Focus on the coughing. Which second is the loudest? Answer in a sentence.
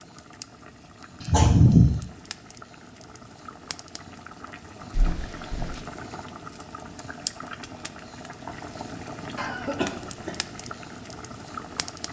The volume of the coughing peaks at 2 seconds.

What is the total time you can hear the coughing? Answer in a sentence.
The coughing can be heard for 3 seconds in total.